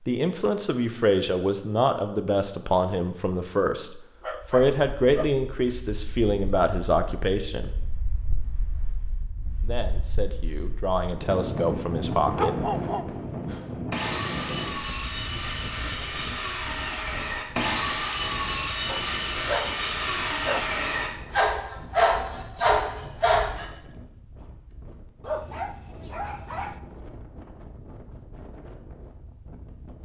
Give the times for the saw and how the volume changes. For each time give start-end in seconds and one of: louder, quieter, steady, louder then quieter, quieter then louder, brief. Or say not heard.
13.3-23.6 louder.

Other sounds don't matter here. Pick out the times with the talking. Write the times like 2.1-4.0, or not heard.
0.0-7.8, 9.6-12.7.